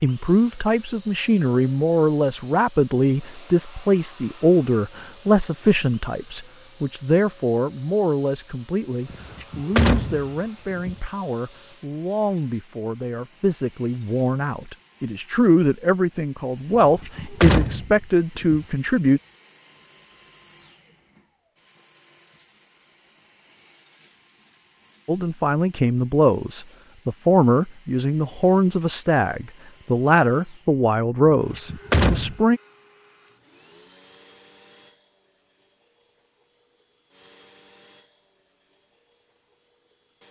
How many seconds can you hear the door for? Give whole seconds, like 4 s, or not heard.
5 s.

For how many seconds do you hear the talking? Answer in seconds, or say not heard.
27 s.